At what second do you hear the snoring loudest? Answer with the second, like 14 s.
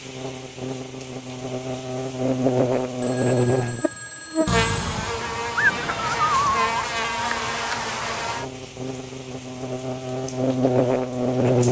6 s.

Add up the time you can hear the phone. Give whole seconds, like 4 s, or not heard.
2 s.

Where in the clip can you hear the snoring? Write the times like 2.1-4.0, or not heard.
4.5-6.8.